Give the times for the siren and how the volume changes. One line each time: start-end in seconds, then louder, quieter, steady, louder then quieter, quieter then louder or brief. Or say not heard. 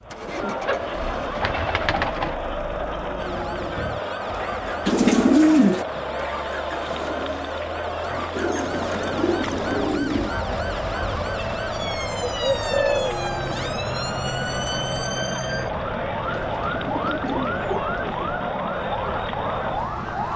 3.1-20.3 louder.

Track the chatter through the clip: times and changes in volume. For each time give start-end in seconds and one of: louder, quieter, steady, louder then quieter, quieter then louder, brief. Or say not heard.
0.0-20.3 steady.